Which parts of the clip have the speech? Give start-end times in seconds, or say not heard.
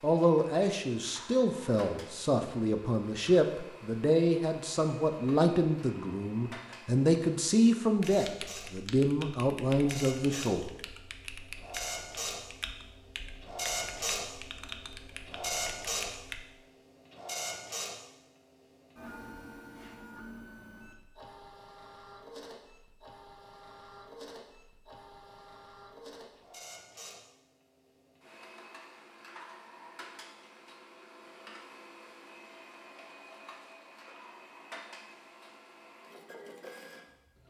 0.0-10.7.